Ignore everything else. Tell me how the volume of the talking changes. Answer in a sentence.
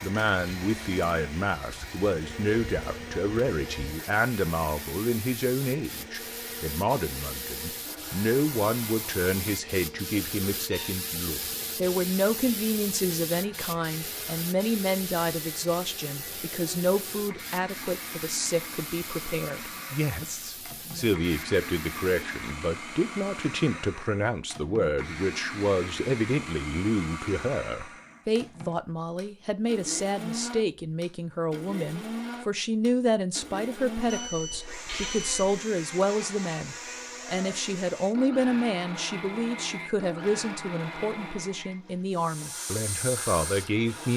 The loudness of the talking stays about the same.